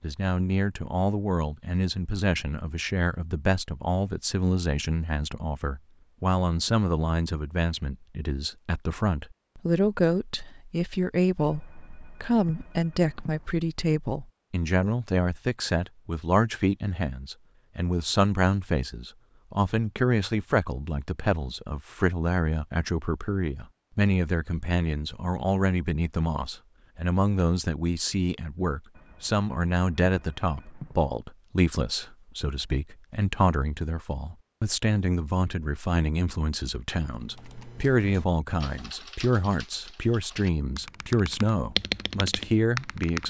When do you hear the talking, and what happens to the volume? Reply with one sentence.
You can hear the talking from 0.0 to 43.2 s, at a steady volume.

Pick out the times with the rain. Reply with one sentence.
The rain can't be heard in this clip.